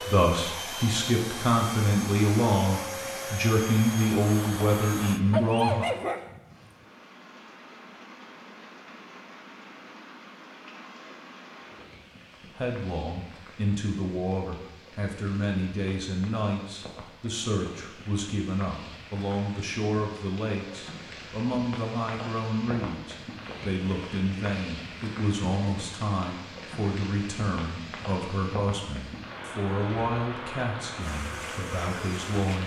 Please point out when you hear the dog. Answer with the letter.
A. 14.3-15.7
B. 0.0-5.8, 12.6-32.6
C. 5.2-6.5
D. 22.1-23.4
C.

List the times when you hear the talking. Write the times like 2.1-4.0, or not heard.
0.0-5.8, 12.6-32.6.